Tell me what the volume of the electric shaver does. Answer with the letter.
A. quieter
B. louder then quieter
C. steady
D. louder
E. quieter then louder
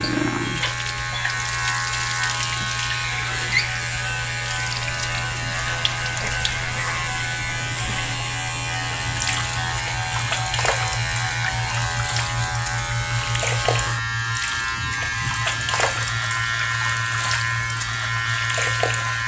C.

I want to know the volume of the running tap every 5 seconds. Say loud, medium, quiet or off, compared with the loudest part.
loud, medium, loud, loud.